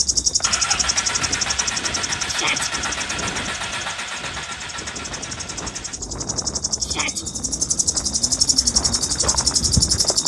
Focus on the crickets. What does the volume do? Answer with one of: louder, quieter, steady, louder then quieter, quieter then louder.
quieter then louder.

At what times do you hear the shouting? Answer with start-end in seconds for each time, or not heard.
2.2-2.7, 6.8-7.2.